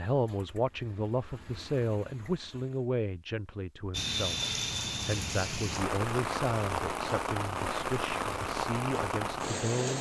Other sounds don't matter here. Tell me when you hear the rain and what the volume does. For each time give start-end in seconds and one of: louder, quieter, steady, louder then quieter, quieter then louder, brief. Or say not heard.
3.9-9.9 steady.